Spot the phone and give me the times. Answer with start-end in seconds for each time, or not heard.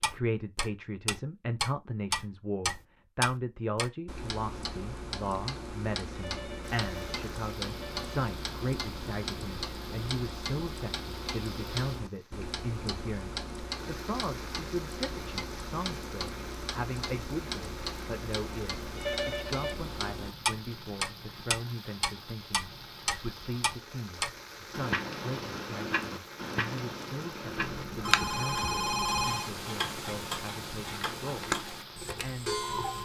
6.2-8.1, 18.9-19.8, 27.6-29.5.